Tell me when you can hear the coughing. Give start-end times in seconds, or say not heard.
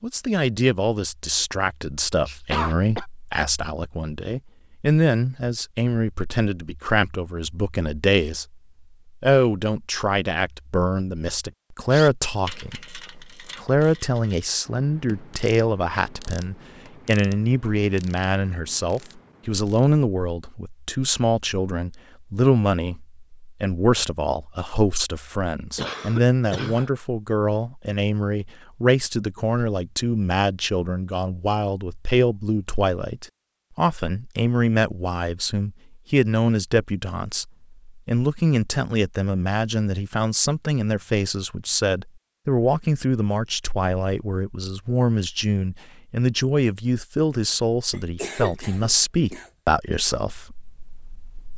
2.2-3.0, 25.8-26.9, 47.9-49.5.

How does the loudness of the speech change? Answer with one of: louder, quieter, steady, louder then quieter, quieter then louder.
steady.